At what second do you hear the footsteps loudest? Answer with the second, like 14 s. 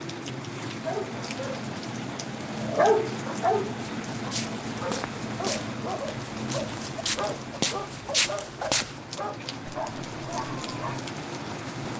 8 s.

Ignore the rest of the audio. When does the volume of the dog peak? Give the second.
3 s.